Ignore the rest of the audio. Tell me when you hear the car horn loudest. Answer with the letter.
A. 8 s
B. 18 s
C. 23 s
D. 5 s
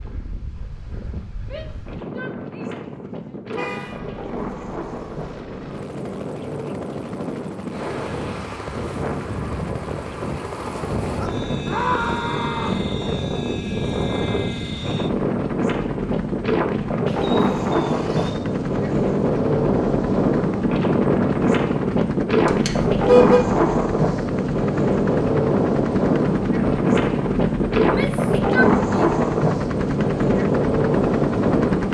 C.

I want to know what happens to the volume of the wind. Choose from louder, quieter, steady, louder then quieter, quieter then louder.
louder.